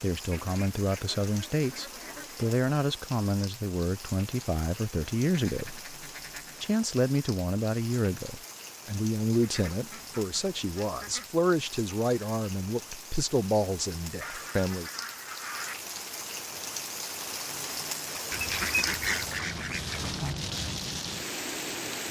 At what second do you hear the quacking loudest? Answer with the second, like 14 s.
19 s.